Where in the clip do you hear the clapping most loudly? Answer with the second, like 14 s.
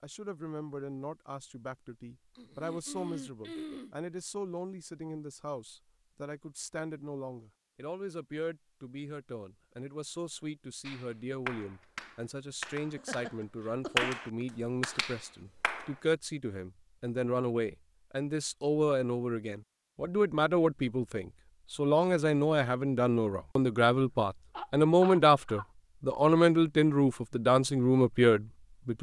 14 s.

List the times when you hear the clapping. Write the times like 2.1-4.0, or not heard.
10.8-15.9.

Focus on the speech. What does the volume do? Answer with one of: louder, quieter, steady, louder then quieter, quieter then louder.
louder.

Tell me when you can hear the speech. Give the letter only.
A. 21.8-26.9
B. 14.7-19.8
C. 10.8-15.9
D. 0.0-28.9
D.